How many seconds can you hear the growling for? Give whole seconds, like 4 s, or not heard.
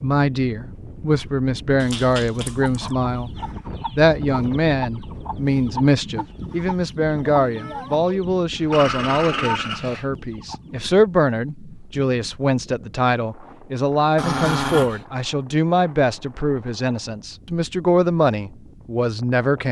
3 s.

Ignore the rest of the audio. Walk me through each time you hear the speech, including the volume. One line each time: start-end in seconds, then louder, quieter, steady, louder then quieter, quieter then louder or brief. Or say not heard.
0.0-19.6 steady.